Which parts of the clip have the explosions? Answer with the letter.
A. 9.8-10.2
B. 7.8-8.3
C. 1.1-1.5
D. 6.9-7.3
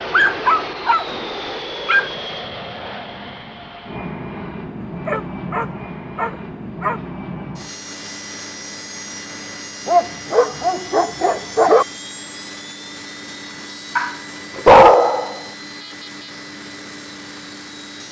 C.